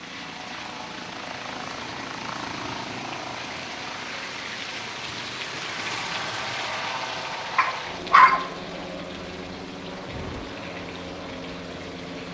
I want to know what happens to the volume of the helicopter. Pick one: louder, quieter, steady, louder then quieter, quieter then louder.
steady.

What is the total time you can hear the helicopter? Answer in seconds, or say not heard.
12 s.